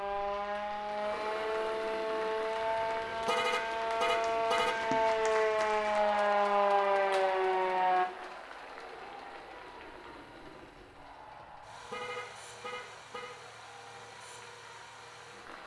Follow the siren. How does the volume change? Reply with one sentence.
The volume of the siren goes up.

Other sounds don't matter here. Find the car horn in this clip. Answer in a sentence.
You can hear the car horn from 2.6 to 4.8 s and from 11.2 to 13.3 s.